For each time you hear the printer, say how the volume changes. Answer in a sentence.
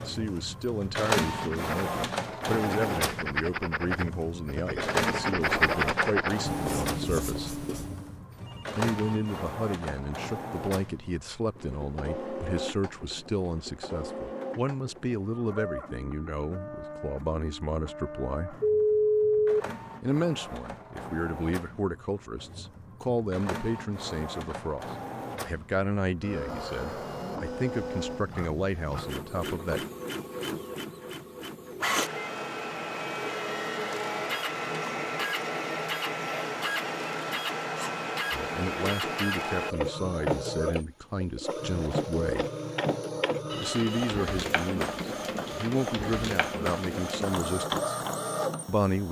You can hear the printer from 0.0 to 49.0 s, getting quieter then louder.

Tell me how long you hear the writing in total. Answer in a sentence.
The writing can be heard for 7 seconds in total.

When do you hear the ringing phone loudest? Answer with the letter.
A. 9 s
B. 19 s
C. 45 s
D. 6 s
B.